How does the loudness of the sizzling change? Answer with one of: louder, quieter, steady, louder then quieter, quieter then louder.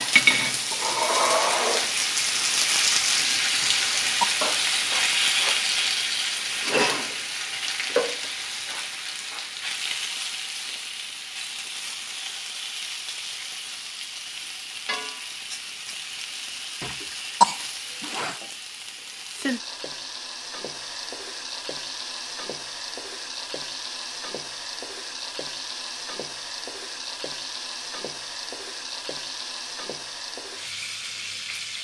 quieter.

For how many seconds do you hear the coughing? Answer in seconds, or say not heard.
2 s.